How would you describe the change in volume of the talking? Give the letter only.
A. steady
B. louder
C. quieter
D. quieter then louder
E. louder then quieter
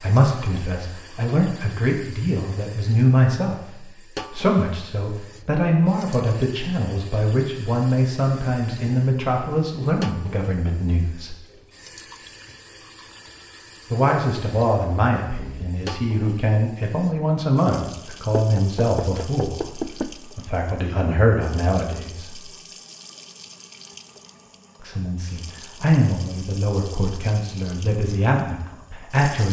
A.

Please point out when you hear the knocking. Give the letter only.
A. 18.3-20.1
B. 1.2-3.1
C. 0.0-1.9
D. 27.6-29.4
A.